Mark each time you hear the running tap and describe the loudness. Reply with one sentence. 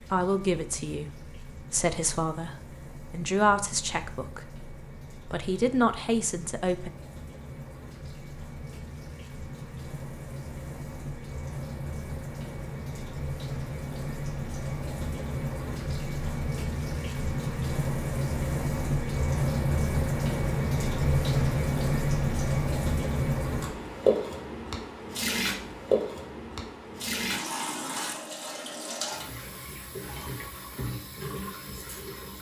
You can hear the running tap from 0.0 to 32.3 s, getting louder then quieter.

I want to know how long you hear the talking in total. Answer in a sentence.
The talking can be heard for 7 seconds in total.